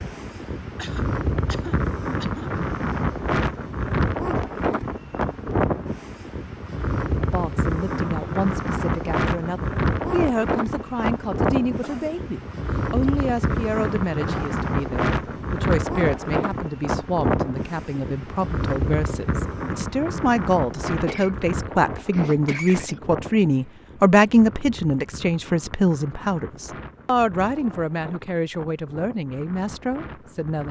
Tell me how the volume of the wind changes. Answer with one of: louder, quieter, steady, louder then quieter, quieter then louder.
quieter.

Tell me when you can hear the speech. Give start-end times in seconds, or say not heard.
7.3-30.6.